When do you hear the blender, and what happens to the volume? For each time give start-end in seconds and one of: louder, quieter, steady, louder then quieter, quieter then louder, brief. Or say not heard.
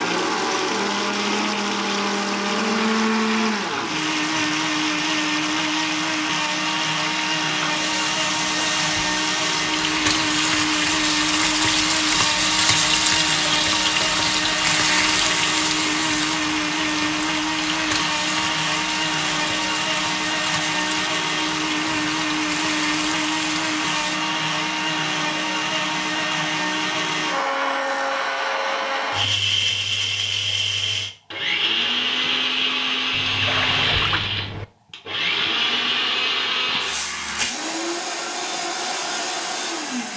0.0-40.1 steady.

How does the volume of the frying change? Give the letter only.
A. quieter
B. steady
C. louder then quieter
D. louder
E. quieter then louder
C.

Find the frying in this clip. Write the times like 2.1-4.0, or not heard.
0.0-24.2.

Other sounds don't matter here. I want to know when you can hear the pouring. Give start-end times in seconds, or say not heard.
33.1-34.6.